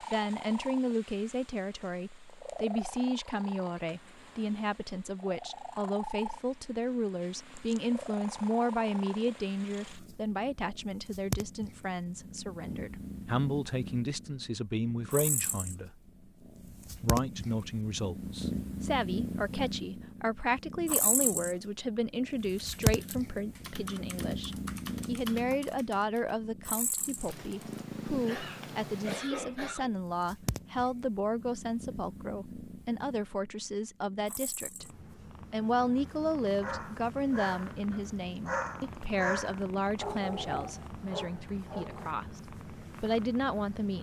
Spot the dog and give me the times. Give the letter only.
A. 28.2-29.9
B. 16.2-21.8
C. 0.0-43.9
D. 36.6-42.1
D.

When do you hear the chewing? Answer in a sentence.
You can't hear the chewing here.